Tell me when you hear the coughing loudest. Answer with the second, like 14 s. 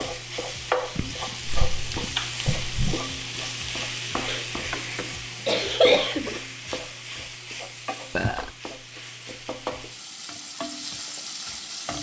6 s.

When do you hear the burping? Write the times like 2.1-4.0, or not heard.
2.1-3.0, 8.1-8.6.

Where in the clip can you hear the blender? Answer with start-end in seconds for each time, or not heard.
not heard.